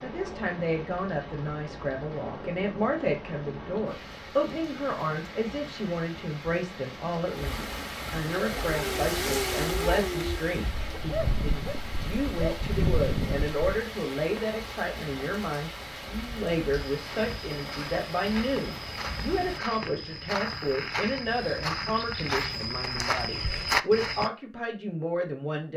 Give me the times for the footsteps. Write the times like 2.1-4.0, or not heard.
16.9-24.3.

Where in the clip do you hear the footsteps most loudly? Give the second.
24 s.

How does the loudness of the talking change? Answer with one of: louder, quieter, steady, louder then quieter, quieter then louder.
steady.